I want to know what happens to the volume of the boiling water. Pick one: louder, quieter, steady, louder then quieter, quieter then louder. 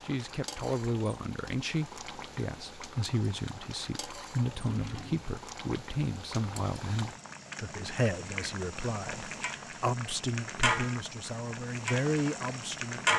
louder.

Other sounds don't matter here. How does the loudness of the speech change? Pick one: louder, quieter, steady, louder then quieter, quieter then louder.
steady.